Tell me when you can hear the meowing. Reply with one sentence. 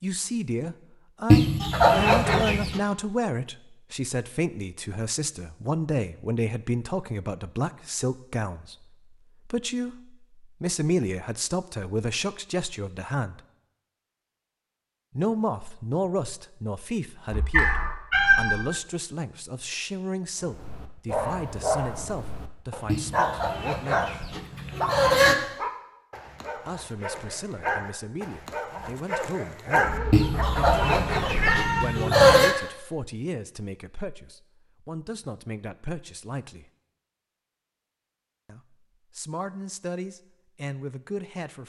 The meowing can be heard from 17.3 to 18.6 s and from 29.8 to 31.9 s.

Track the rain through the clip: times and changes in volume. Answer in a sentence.
You can't hear the rain here.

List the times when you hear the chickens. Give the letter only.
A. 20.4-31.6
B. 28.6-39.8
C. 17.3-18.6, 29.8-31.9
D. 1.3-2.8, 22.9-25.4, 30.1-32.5
D.